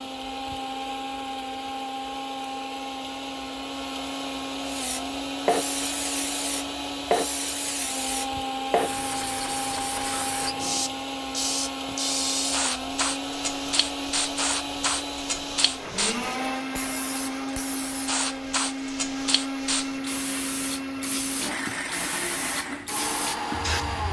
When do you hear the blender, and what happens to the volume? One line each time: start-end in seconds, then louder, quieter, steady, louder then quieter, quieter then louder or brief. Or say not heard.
0.0-24.0 steady.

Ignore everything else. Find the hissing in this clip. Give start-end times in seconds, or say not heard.
4.7-24.0.